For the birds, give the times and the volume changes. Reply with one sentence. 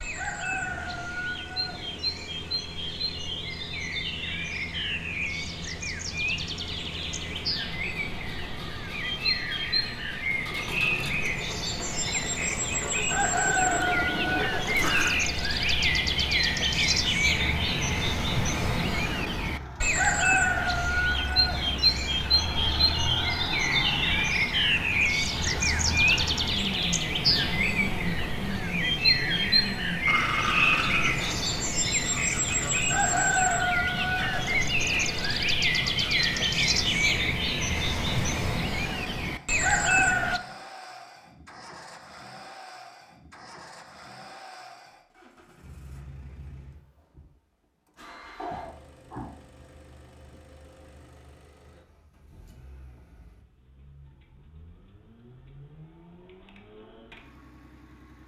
You can hear the birds from 0.0 to 40.4 s, getting louder.